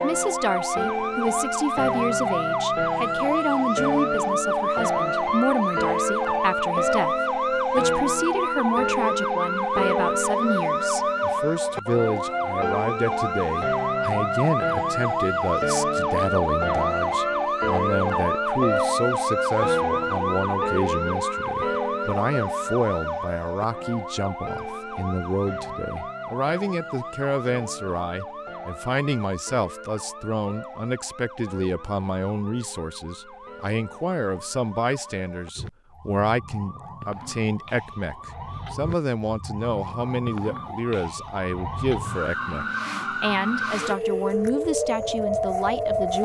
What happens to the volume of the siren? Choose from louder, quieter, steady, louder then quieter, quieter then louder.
quieter then louder.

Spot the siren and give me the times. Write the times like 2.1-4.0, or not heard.
0.0-46.2.